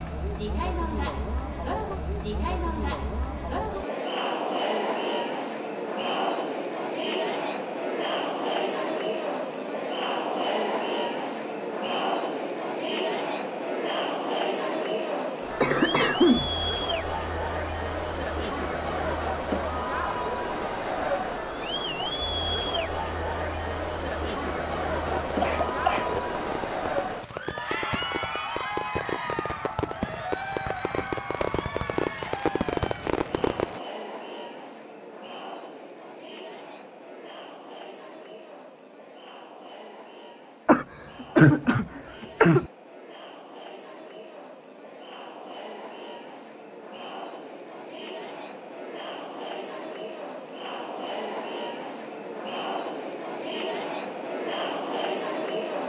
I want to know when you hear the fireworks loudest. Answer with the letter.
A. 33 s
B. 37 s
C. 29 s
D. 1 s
A.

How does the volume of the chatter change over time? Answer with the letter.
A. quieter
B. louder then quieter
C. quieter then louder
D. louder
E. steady
C.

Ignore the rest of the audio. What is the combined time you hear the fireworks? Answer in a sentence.
You can hear the fireworks for 9 seconds altogether.